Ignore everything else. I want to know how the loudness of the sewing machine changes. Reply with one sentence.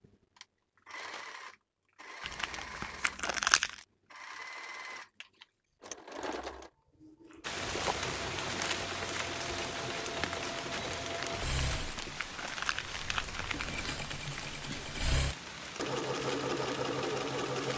The loudness of the sewing machine goes up.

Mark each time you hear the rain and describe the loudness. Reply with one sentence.
The rain can be heard from 7.4 to 17.7 s, getting quieter.